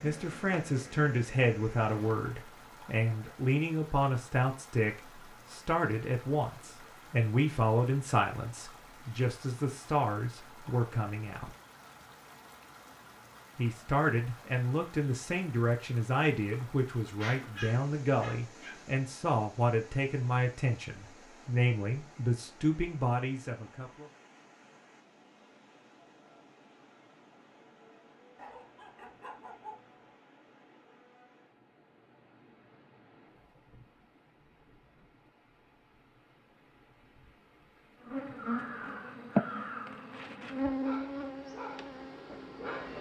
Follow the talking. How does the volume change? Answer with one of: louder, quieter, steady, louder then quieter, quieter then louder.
steady.